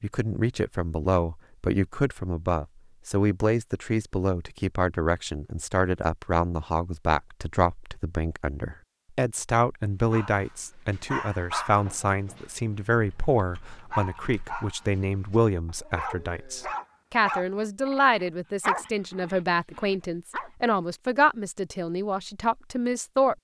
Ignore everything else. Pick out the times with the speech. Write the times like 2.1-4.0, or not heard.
0.0-23.3.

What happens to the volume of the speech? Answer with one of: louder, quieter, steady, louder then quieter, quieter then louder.
steady.